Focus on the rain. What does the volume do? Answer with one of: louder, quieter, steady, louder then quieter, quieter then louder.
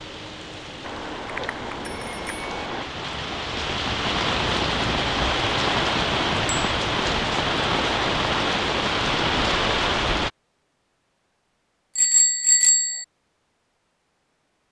louder.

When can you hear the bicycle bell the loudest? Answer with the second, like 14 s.
13 s.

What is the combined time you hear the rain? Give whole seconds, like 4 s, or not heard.
10 s.